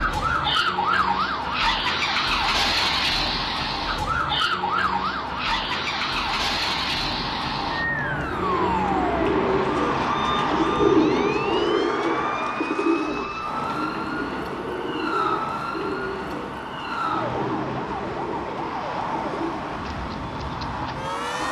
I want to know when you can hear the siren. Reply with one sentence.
The siren can be heard from 0.0 to 21.4 s.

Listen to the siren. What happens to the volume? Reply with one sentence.
The loudness of the siren goes down.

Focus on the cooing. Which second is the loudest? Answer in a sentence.
The volume of the cooing peaks at 11 seconds.